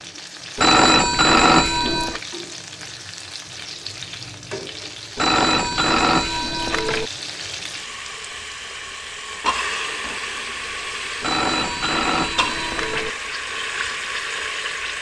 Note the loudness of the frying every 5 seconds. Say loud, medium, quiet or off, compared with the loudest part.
medium, loud, loud.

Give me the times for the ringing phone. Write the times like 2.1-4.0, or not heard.
0.6-2.2, 5.2-7.1, 11.2-13.1.